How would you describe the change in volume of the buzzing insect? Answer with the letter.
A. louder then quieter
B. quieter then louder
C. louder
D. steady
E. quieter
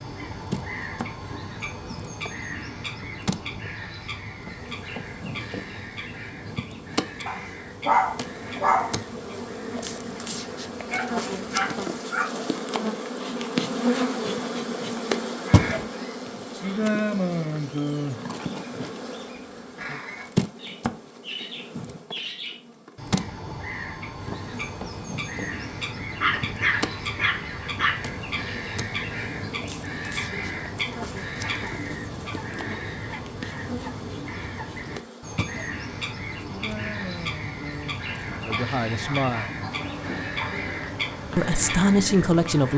A.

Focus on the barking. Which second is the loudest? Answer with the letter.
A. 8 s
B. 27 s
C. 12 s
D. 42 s
A.